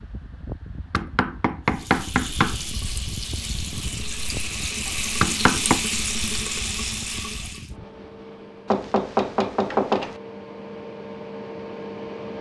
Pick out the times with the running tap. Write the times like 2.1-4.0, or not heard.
1.6-7.8.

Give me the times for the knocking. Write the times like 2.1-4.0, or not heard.
0.9-2.5, 5.2-5.8, 8.7-10.2.